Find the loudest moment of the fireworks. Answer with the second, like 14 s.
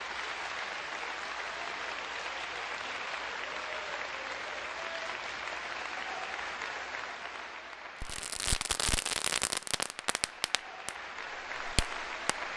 9 s.